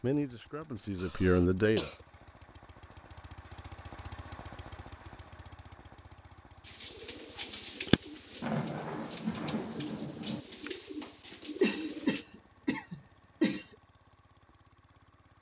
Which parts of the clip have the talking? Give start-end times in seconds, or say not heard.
0.0-1.9.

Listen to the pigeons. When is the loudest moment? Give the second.
8 s.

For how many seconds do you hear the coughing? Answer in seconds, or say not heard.
3 s.